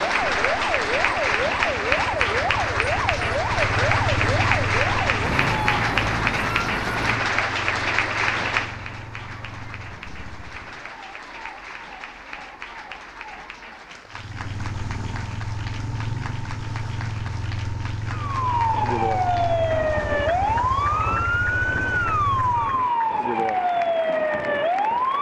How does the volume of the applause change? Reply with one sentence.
The volume of the applause goes down.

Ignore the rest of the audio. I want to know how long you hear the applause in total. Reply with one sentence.
The applause can be heard for 25 seconds in total.